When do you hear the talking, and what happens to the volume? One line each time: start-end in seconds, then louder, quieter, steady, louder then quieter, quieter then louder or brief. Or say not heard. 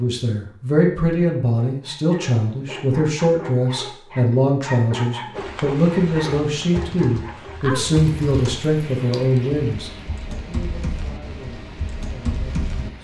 0.0-12.9 quieter.